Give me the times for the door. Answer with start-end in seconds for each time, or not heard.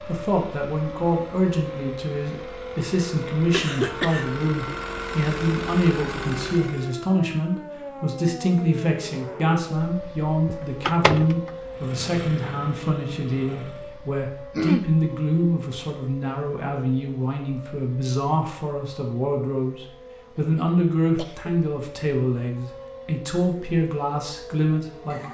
10.4-11.5.